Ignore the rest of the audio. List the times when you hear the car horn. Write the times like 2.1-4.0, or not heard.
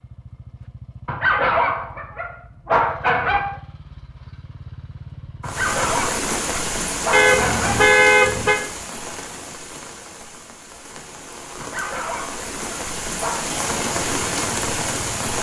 7.1-8.6.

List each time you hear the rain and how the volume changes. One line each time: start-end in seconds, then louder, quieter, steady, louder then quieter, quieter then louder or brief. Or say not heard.
5.5-15.3 quieter then louder.